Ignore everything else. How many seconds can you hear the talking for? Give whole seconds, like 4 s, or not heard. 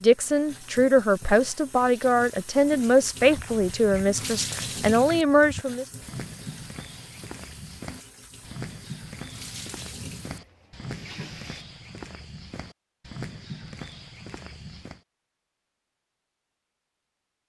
6 s.